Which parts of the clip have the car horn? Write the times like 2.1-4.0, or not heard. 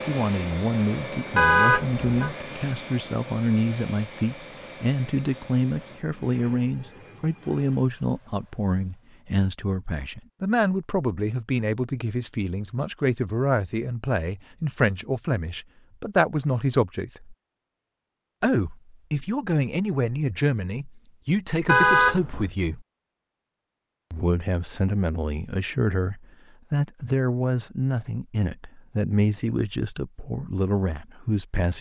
1.4-2.3, 21.6-22.4.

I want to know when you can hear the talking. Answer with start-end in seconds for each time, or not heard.
0.1-17.4, 18.4-22.9, 24.1-31.7.